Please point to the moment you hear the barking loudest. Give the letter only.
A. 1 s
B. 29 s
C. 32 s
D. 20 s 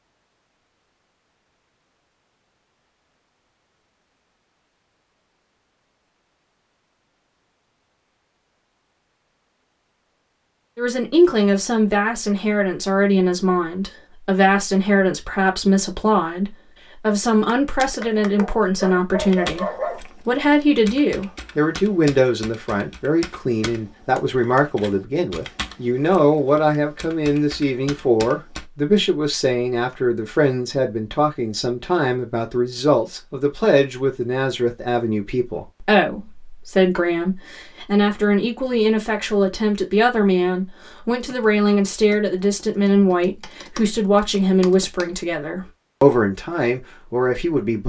D.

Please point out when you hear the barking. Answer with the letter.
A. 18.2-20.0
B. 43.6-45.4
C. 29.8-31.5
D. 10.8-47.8
A.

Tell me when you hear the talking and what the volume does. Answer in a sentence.
The talking can be heard from 10.8 to 47.8 s, at a steady volume.